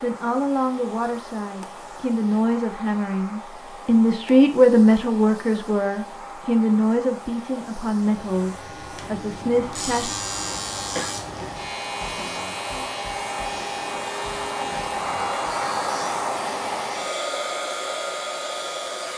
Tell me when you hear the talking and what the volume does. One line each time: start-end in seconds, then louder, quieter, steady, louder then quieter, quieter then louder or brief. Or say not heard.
0.0-10.2 louder then quieter.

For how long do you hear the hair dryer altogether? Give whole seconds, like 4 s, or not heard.
19 s.